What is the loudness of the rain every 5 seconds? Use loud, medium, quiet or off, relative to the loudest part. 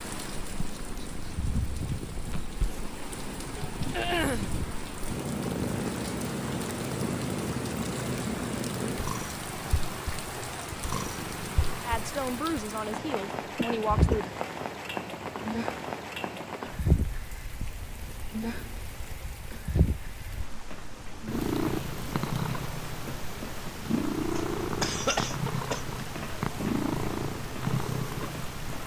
loud, loud, loud, loud, medium, loud.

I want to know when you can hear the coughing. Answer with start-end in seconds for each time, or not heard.
3.9-4.5, 13.6-14.2, 24.4-25.9.